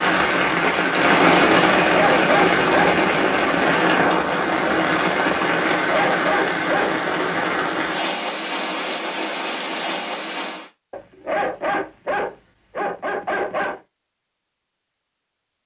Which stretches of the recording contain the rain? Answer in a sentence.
The rain can be heard from 0.0 to 10.7 s.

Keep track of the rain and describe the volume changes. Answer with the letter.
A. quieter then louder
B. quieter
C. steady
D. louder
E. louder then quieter
B.